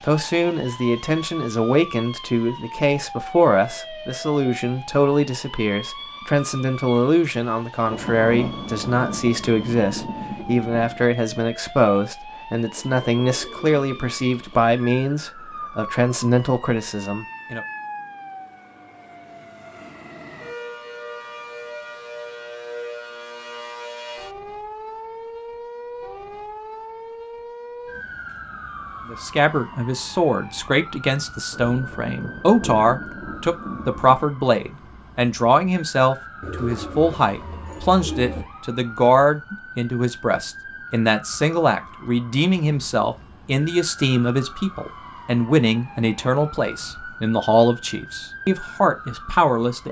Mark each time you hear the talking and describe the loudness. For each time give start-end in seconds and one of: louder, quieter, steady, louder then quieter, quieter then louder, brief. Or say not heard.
0.0-17.6 steady
29.1-49.8 steady.